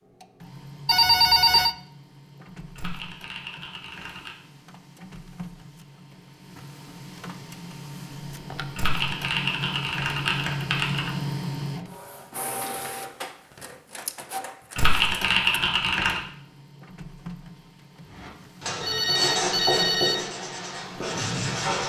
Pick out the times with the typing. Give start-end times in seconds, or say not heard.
2.8-4.3, 8.8-11.1, 14.8-16.2.